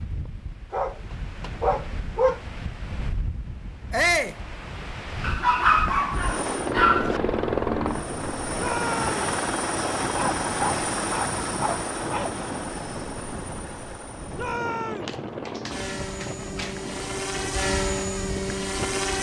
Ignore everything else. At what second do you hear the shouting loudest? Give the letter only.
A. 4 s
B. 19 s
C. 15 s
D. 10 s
A.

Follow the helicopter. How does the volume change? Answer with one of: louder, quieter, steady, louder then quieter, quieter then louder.
quieter then louder.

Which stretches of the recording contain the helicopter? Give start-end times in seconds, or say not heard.
6.1-19.1.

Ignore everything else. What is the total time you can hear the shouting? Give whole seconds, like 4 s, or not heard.
2 s.